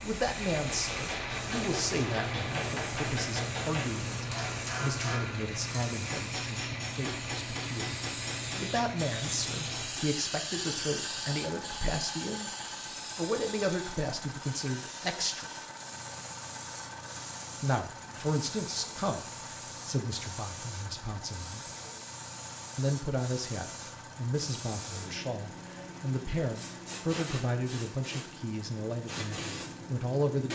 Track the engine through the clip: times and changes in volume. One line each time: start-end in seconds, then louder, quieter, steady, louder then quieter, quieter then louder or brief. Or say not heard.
0.0-30.4 quieter.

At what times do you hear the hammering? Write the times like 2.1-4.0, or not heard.
0.7-10.1.